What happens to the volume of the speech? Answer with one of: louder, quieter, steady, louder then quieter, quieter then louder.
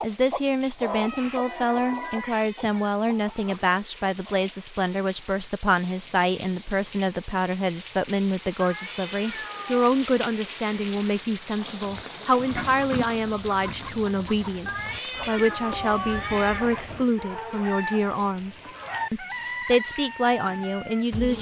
steady.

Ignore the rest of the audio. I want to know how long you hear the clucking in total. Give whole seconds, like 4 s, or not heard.
14 s.